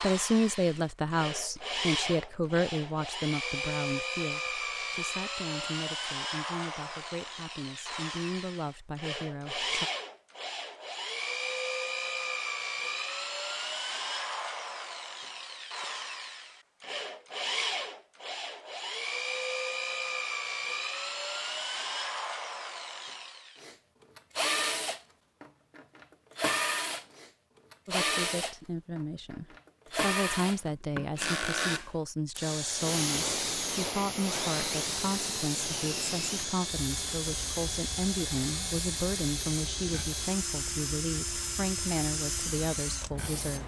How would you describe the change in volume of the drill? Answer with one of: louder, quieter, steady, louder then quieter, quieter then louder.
steady.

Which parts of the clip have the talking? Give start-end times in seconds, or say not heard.
0.0-9.9, 27.9-43.6.